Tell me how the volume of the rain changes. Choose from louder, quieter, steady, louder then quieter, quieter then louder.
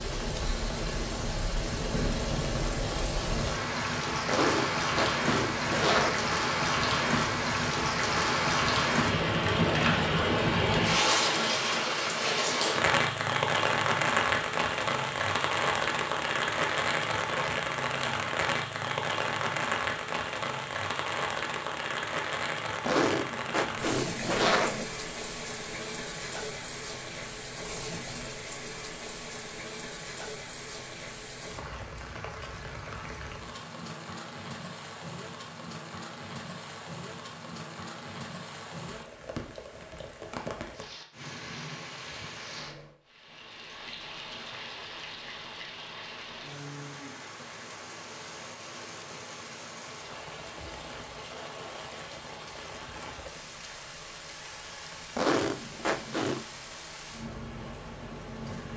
quieter.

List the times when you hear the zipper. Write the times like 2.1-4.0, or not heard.
4.2-6.3, 22.9-24.9, 55.1-56.5.